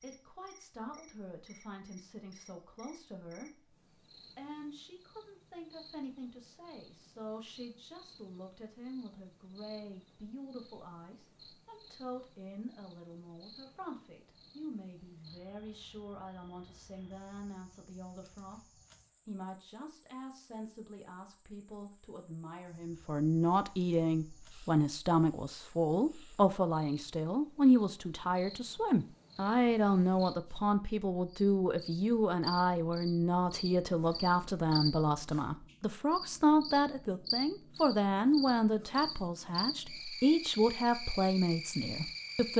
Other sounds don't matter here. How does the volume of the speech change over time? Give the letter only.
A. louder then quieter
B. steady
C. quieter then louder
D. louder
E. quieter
D.